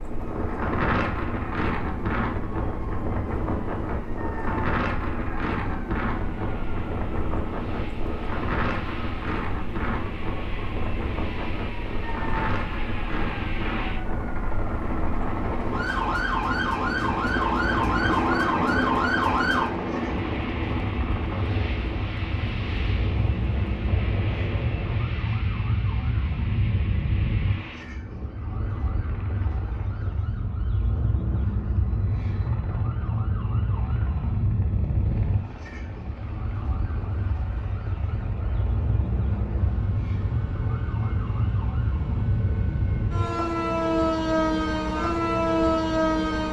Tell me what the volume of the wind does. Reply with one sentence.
The volume of the wind goes down.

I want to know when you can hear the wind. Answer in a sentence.
The wind can be heard from 0.0 to 25.3 s.